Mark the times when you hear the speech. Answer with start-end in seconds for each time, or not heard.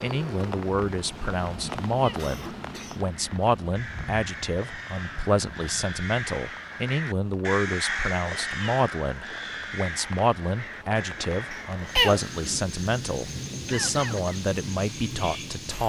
0.0-15.8.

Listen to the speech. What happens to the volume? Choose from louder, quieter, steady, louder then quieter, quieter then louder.
steady.